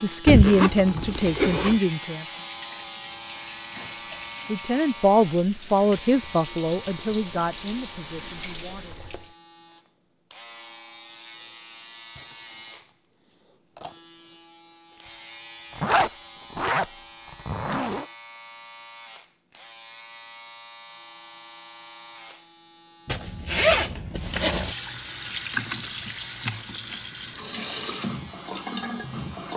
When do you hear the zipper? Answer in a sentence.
You can hear the zipper from 0.2 to 1.8 s, from 15.8 to 16.9 s, from 17.4 to 18.1 s and from 23.1 to 24.8 s.